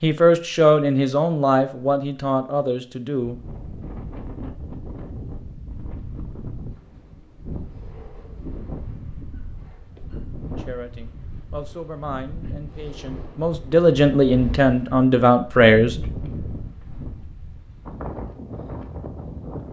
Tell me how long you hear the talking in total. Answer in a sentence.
The talking can be heard for 9 seconds in total.